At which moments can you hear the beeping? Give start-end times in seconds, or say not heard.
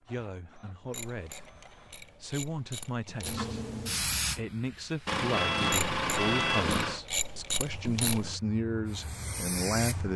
5.0-7.0.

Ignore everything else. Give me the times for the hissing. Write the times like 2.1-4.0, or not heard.
3.2-5.2, 7.7-10.1.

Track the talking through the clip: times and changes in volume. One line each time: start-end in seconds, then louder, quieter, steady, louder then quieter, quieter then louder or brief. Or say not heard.
0.0-10.1 louder.